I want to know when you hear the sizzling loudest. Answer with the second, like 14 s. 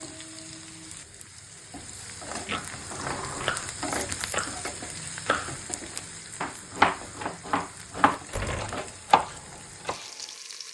4 s.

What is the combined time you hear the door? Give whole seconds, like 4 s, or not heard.
2 s.